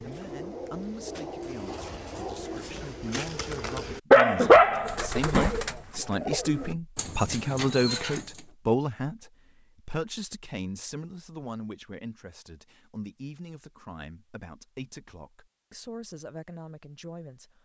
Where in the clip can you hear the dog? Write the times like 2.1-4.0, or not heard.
4.1-5.5.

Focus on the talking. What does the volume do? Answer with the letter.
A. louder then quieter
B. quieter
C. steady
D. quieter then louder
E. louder
A.